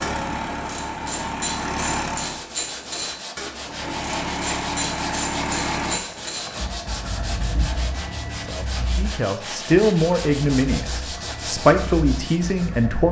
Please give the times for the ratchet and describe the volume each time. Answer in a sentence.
The ratchet can be heard from 0.0 to 6.5 s, at a steady volume.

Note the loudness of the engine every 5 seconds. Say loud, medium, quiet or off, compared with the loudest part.
loud, loud, medium.